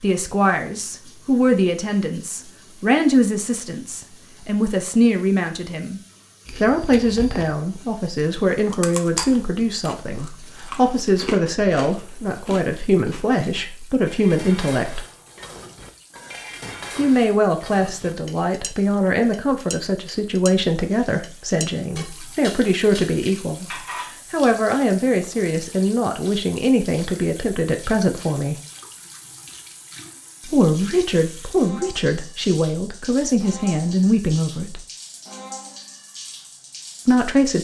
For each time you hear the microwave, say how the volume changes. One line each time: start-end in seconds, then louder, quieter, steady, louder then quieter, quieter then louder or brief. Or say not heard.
not heard.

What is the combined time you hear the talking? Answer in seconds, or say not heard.
31 s.